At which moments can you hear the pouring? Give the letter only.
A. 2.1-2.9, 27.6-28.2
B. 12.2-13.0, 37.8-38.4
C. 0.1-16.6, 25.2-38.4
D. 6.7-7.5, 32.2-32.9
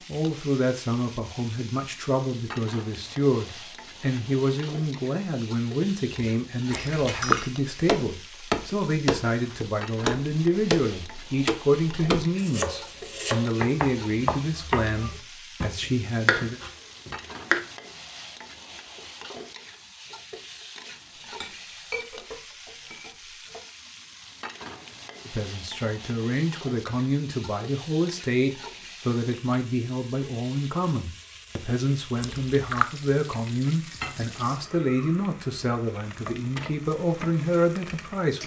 D.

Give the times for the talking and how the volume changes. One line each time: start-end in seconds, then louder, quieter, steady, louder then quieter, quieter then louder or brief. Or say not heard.
0.1-16.6 steady
25.2-38.4 steady.